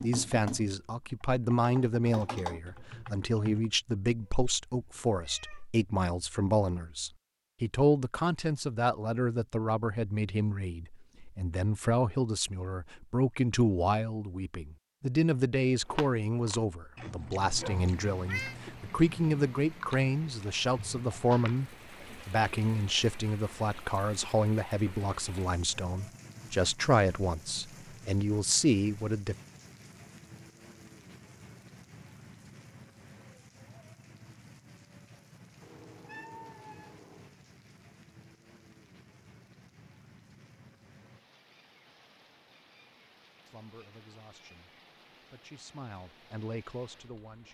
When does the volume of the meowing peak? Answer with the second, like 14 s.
18 s.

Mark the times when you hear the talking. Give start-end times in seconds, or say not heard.
0.0-29.4, 43.5-47.4.